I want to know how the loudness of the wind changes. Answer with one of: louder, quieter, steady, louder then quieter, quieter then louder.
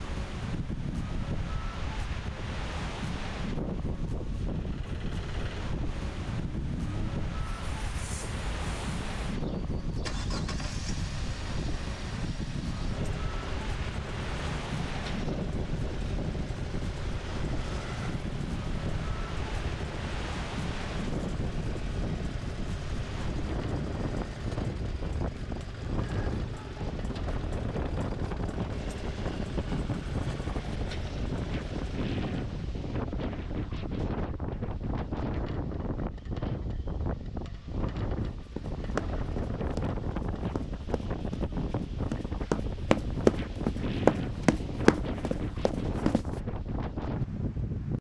steady.